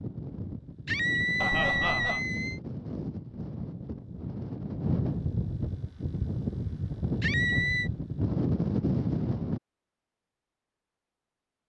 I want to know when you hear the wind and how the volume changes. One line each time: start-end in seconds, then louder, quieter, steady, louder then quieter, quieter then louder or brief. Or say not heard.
0.0-9.6 louder.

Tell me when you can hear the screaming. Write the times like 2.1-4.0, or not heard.
0.8-2.6, 7.2-7.9.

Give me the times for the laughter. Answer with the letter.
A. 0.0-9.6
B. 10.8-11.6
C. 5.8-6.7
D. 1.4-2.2
D.